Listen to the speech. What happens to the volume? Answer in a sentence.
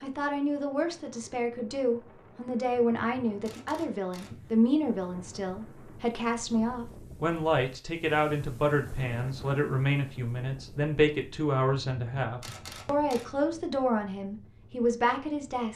The volume of the speech stays about the same.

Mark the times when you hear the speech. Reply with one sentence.
You can hear the speech from 0.0 to 15.7 s.